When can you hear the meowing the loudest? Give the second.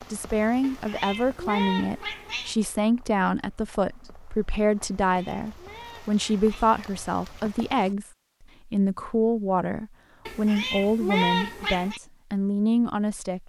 11 s.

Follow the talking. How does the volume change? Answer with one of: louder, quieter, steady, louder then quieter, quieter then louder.
steady.